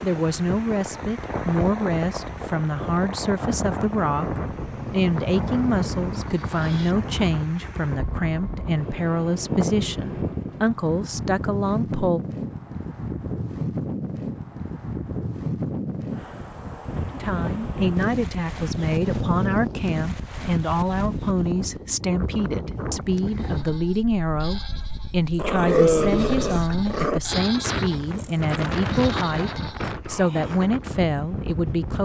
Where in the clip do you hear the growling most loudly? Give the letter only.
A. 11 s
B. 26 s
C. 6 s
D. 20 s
B.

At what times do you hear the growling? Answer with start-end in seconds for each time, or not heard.
4.5-7.0, 18.7-19.8, 25.4-27.2.